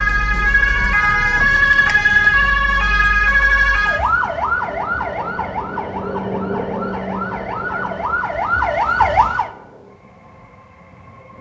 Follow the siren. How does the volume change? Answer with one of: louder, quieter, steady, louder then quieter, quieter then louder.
quieter then louder.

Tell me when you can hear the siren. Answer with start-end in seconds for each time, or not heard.
0.0-9.5.